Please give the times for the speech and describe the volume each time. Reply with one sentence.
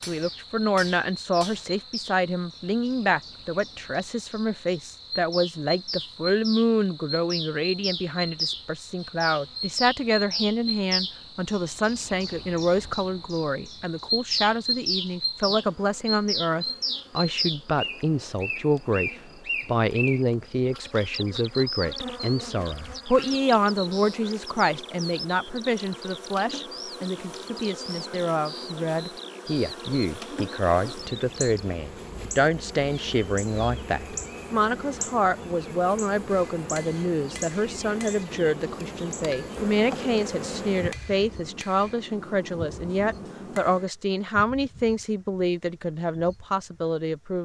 The speech can be heard from 0.1 to 47.4 s, at a steady volume.